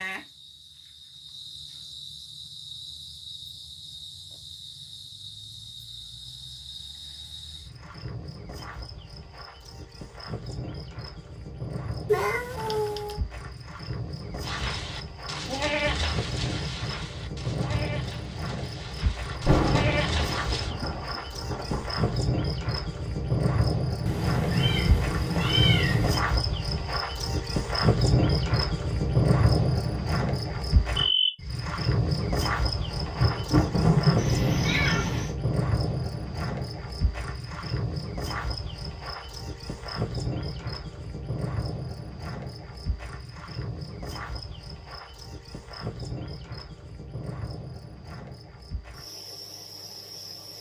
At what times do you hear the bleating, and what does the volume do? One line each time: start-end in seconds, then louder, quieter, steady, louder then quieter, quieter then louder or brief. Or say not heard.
14.4-20.8 quieter then louder.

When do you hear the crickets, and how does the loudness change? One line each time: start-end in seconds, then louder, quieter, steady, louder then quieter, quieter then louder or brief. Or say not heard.
0.0-50.5 louder then quieter.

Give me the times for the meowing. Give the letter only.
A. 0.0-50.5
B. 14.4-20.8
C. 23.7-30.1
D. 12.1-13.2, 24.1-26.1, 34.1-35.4
D.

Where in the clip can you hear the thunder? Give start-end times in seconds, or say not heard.
19.4-22.1, 32.6-35.2.